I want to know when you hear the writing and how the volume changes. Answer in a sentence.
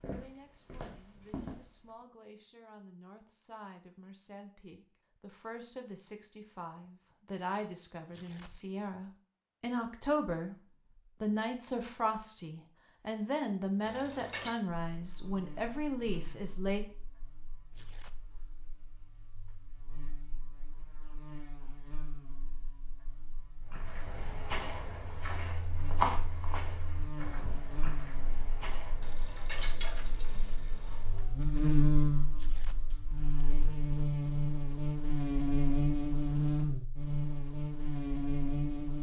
You can't hear the writing here.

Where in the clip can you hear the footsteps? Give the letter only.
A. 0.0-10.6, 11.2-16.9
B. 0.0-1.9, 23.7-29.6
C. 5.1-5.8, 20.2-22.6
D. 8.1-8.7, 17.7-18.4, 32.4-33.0
B.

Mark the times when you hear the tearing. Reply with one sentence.
The tearing can be heard from 8.1 to 8.7 s, from 17.7 to 18.4 s and from 32.4 to 33.0 s.